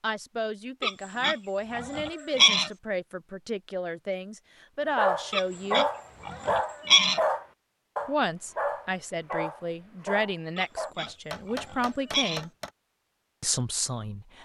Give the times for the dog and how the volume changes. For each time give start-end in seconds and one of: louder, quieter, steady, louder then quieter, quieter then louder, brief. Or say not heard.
5.0-10.9 quieter.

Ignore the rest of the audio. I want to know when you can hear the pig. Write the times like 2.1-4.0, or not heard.
0.8-2.7, 5.3-7.2, 10.6-12.4.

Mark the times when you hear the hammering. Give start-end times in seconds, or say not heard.
11.1-12.7.